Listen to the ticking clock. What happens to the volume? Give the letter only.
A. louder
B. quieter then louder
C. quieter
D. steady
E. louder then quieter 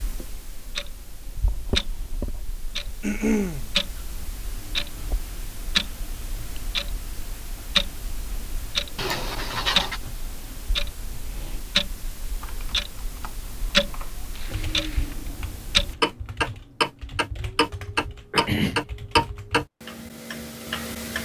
A.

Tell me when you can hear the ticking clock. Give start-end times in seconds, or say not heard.
0.0-21.2.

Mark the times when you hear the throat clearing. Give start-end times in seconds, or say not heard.
3.0-3.7, 8.9-10.0, 18.3-18.9.